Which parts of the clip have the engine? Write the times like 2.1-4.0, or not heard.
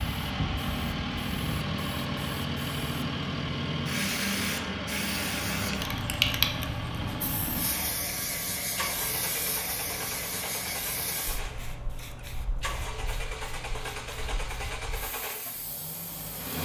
0.0-16.5.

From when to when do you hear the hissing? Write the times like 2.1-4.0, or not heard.
0.0-16.5.